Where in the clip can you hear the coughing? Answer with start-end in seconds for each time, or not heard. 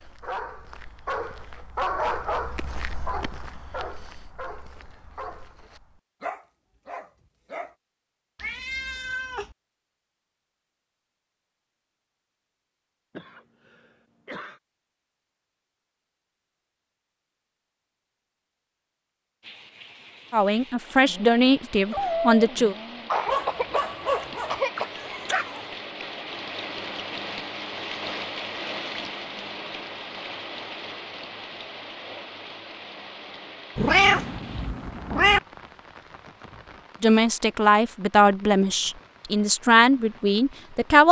13.2-14.6, 23.1-25.1.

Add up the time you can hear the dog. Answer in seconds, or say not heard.
12 s.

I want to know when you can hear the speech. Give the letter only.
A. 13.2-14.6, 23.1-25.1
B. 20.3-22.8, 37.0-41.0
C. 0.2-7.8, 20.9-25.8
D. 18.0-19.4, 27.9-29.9
B.